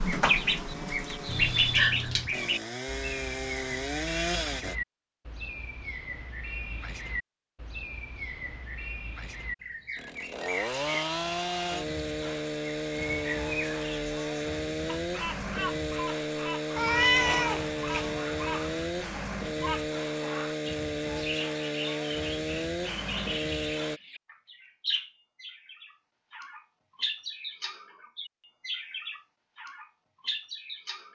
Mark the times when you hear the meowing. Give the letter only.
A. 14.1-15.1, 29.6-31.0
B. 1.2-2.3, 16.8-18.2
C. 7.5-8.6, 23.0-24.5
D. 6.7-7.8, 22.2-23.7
B.